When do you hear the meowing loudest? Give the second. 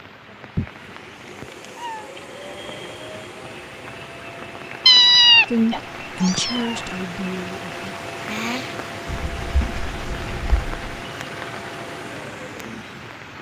5 s.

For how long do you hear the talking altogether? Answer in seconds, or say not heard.
2 s.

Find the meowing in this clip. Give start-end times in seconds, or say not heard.
0.6-2.0, 4.8-6.8, 9.1-11.0.